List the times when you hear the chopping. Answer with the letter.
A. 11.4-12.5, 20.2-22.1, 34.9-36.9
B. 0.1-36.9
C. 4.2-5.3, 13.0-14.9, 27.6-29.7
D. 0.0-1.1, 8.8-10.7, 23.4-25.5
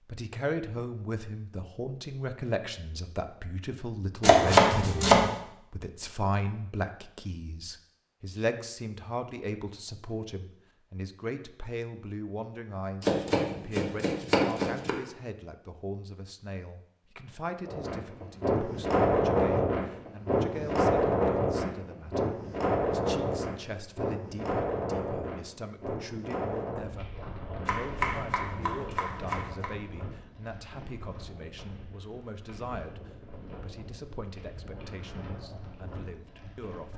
C.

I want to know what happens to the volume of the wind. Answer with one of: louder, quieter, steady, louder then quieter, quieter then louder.
quieter.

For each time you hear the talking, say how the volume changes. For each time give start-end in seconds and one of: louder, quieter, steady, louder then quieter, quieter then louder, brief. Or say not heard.
0.1-36.9 quieter.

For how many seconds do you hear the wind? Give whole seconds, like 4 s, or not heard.
19 s.